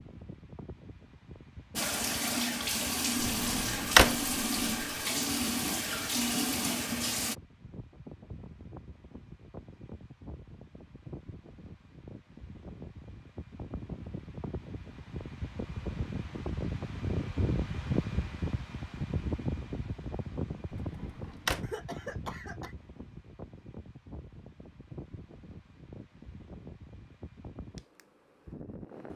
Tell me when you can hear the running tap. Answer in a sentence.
The running tap can be heard from 1.8 to 7.3 s.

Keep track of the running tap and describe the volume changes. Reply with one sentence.
The loudness of the running tap stays about the same.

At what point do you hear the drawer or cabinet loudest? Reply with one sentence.
The volume of the drawer or cabinet peaks at 4 seconds.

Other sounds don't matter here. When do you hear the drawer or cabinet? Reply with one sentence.
You can hear the drawer or cabinet from 3.2 to 4.3 s and from 20.7 to 21.6 s.